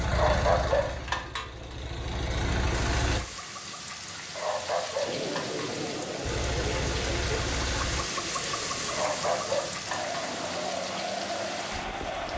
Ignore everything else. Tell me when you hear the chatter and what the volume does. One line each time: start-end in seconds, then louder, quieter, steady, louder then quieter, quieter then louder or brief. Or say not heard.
5.0-12.3 quieter then louder.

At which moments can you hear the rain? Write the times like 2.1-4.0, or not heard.
2.7-12.3.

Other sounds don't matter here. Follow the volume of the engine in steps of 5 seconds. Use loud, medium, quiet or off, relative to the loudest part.
loud, loud, off.